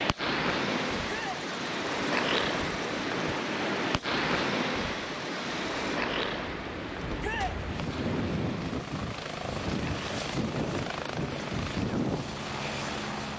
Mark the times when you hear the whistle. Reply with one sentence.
The whistle can't be heard in this clip.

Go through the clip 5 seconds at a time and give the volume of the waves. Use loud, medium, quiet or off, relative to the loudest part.
loud, medium, quiet.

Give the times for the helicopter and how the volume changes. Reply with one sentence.
You can hear the helicopter from 0.0 to 13.3 s, getting louder.